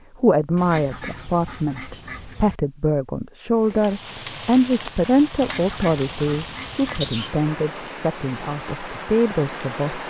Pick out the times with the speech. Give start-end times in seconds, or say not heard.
0.2-10.0.